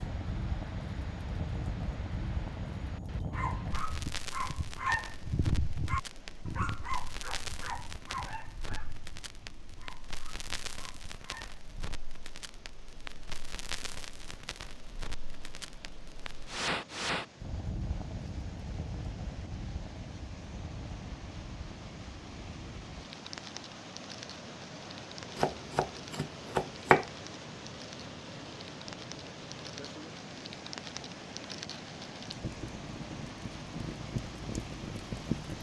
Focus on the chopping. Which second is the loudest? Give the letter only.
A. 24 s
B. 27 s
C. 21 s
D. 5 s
B.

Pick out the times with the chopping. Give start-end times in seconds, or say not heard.
25.4-27.1.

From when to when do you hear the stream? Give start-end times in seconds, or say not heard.
0.0-35.5.